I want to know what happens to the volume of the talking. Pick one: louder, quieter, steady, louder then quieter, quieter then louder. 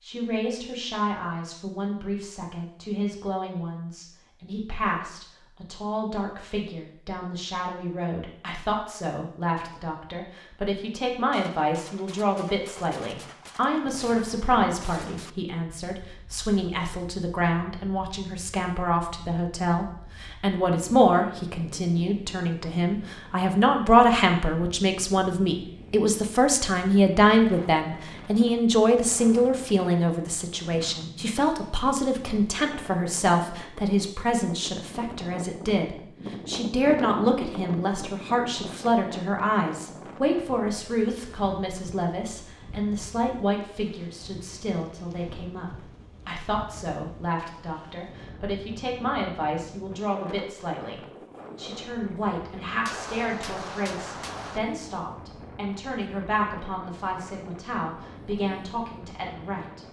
louder then quieter.